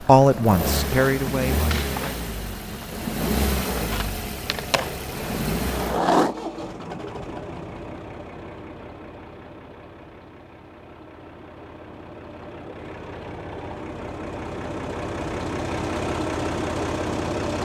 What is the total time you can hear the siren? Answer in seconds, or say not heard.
not heard.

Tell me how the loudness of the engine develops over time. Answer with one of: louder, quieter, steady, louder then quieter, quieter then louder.
quieter then louder.